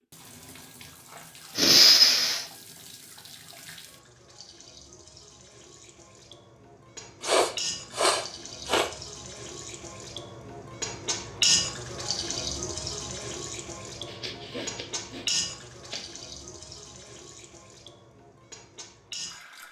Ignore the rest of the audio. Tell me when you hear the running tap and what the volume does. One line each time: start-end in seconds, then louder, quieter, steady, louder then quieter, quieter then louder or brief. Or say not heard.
0.1-19.6 louder then quieter.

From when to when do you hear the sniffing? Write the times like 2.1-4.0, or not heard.
1.6-2.5, 7.2-8.9, 14.1-16.1.